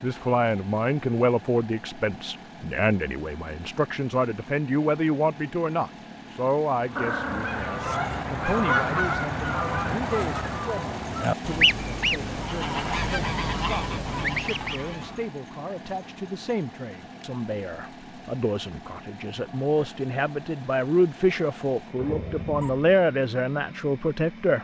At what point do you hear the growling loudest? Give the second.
7 s.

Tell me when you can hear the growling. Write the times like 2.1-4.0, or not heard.
7.0-7.8, 21.9-22.9.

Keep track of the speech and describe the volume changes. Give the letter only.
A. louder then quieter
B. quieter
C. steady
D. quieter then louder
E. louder
D.